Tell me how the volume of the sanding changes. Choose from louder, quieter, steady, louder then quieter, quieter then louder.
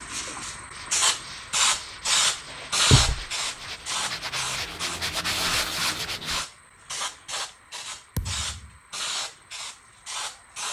louder.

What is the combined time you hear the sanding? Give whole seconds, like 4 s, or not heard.
6 s.